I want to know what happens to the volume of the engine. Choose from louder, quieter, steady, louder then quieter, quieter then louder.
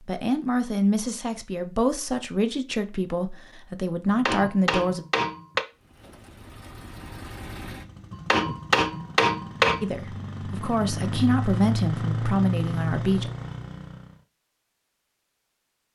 louder.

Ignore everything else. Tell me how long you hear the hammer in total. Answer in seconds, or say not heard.
3 s.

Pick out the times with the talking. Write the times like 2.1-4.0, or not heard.
0.1-5.0, 9.8-13.3.